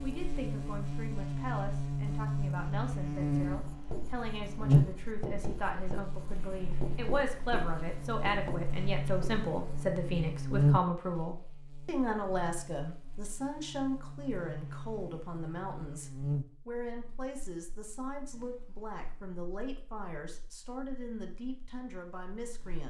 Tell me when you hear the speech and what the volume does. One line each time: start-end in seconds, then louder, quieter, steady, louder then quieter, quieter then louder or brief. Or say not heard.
0.0-22.8 louder then quieter.